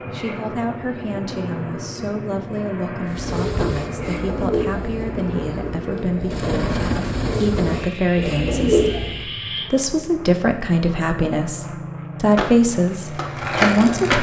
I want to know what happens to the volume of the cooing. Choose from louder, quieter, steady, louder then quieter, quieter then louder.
louder.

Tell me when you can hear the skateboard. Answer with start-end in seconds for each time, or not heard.
12.2-14.1.